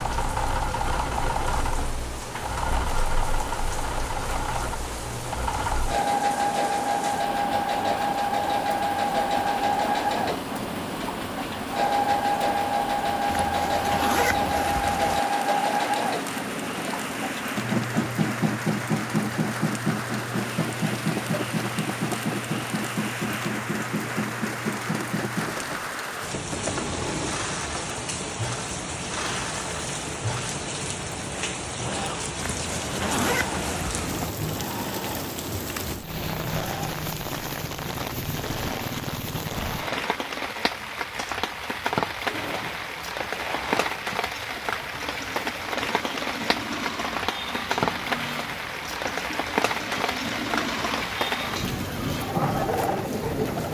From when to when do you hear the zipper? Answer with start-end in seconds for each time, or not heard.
13.2-15.2, 32.4-34.3.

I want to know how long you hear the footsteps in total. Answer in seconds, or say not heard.
not heard.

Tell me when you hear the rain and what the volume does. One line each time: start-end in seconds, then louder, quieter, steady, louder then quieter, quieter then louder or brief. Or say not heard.
0.0-53.7 louder.